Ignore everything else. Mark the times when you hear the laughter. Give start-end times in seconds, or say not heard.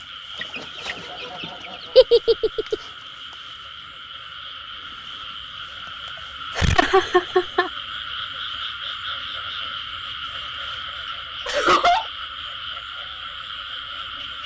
1.9-2.8, 6.5-7.7, 11.4-12.1.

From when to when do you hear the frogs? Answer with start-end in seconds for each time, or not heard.
0.0-14.4.